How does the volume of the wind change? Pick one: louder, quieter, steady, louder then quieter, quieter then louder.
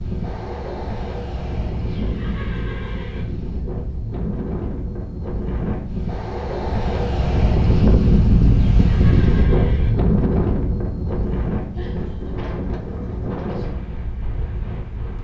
louder then quieter.